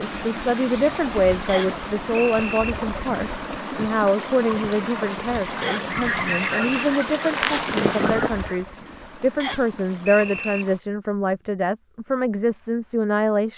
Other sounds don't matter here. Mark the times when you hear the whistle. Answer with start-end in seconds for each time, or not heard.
1.4-2.8, 5.6-6.7, 9.4-10.7.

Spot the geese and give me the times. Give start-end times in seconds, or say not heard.
5.5-8.5.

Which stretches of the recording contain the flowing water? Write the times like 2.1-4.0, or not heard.
0.0-10.8.